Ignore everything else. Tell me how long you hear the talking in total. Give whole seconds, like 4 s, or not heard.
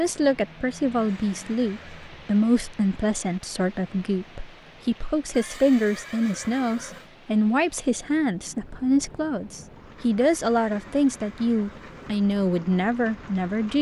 14 s.